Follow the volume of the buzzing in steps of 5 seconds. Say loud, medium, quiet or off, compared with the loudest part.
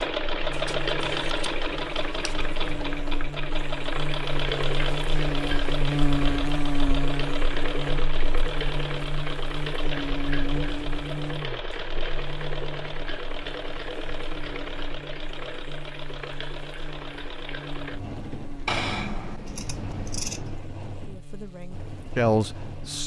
medium, loud, medium, quiet, quiet.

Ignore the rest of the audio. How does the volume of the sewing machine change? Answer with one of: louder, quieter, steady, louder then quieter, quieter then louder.
quieter.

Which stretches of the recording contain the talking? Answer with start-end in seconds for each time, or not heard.
21.0-23.0.